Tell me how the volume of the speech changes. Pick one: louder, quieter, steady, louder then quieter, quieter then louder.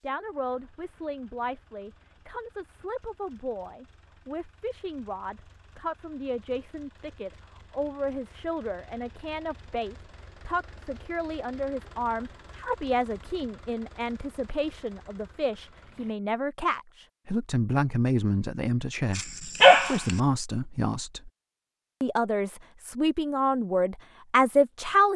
louder.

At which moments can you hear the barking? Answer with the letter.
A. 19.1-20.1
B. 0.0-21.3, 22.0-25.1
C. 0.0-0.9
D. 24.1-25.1
A.